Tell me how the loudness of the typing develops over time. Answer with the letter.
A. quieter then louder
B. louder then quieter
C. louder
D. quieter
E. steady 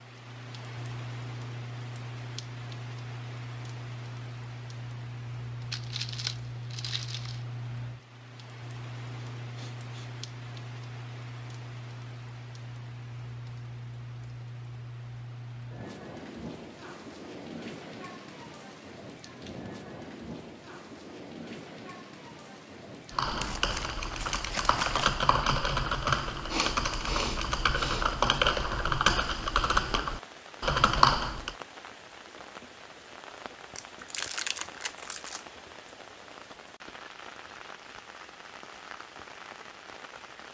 C.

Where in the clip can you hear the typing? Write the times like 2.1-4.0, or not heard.
23.1-31.6.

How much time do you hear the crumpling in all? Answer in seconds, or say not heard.
5 s.